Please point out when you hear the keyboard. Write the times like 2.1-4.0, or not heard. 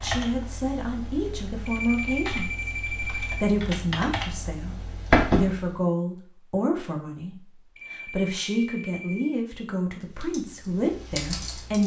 0.0-5.8, 9.8-11.8.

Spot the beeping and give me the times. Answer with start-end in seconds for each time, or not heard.
1.6-3.5, 7.8-9.4.